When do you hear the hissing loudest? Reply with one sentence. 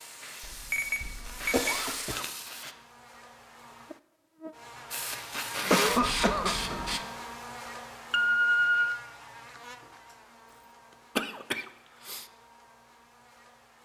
The loudest moment of the hissing is at 6 seconds.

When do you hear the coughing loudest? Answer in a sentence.
The loudest moment of the coughing is at 6 seconds.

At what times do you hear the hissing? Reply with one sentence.
The hissing can be heard from 0.0 to 2.8 s and from 4.9 to 7.0 s.